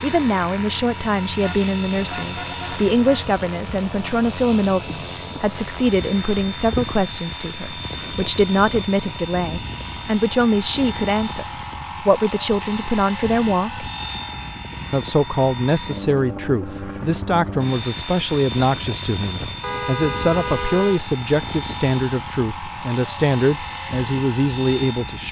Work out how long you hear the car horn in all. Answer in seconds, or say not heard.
3 s.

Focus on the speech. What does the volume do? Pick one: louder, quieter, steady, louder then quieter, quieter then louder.
steady.